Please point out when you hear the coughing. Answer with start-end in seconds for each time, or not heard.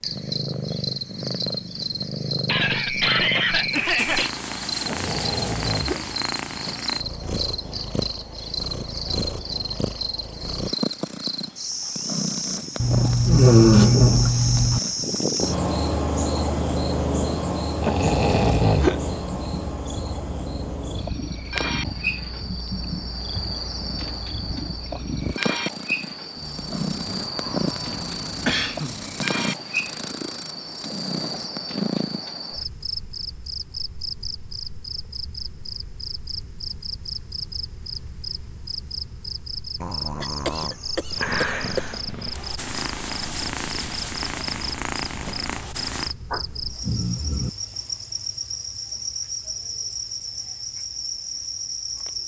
2.5-4.3, 27.9-29.1, 40.2-42.0.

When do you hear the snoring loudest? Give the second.
14 s.